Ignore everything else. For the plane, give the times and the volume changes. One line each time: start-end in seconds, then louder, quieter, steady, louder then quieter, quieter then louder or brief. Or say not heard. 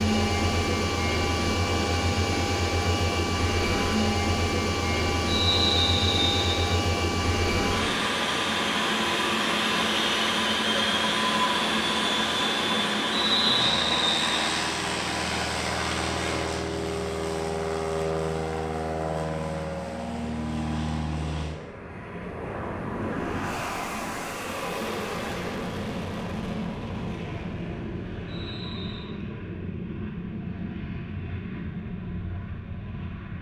0.0-33.3 quieter.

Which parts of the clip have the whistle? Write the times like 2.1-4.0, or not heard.
5.2-6.7, 13.1-14.4, 28.2-29.1.